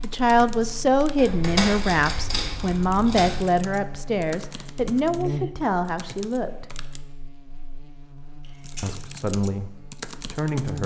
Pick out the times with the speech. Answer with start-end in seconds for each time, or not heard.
0.0-6.8, 8.8-10.8.